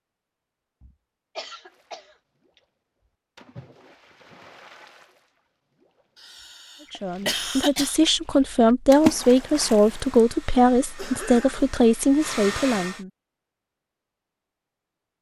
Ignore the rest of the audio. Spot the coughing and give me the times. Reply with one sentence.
The coughing can be heard from 0.8 to 2.1 s, from 6.2 to 8.0 s and from 10.9 to 11.8 s.